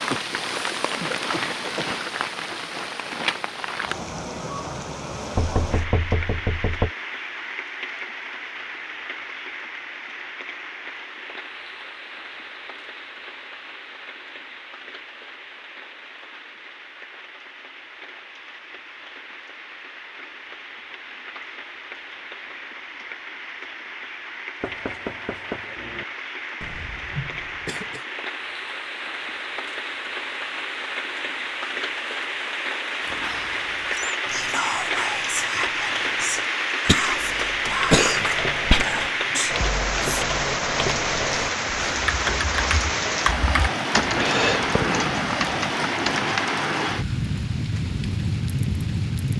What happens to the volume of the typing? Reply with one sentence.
The volume of the typing goes up.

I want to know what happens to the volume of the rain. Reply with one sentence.
The loudness of the rain goes down, then up.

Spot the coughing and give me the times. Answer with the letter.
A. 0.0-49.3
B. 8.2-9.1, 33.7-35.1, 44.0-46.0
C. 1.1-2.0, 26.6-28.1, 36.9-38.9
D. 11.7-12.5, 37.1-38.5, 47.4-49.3
C.